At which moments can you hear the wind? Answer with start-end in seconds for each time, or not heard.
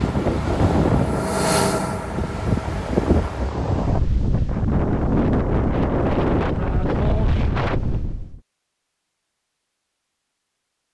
0.0-8.4.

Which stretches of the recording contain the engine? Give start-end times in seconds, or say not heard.
0.0-3.5.